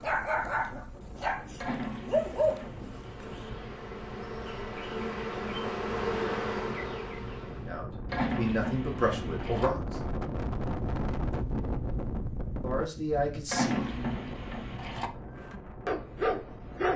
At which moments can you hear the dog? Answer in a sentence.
The dog can be heard from 0.0 to 3.4 s and from 15.4 to 16.9 s.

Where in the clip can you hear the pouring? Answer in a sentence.
The pouring can be heard from 1.6 to 2.8 s, from 8.1 to 9.7 s and from 13.5 to 15.1 s.